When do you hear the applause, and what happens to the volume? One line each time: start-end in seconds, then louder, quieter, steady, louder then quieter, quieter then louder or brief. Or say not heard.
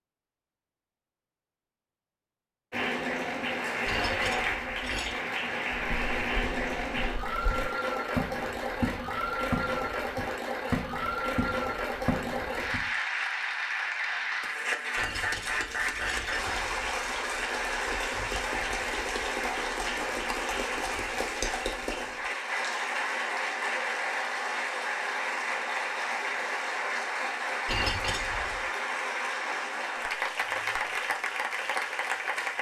2.7-32.5 steady.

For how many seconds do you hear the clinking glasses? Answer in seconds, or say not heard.
4 s.